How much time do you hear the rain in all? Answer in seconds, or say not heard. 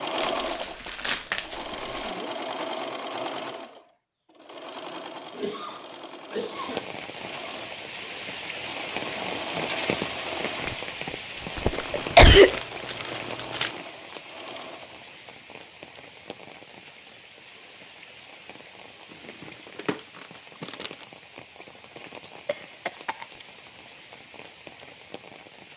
19 s.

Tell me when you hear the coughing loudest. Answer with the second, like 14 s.
12 s.